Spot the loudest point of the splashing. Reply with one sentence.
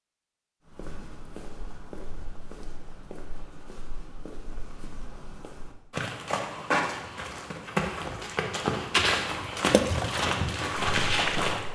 The loudest moment of the splashing is at 10 seconds.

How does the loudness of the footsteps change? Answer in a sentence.
The loudness of the footsteps goes up.